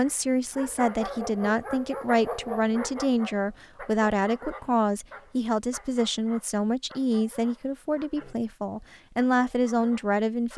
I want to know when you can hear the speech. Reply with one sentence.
You can hear the speech from 0.0 to 10.5 s.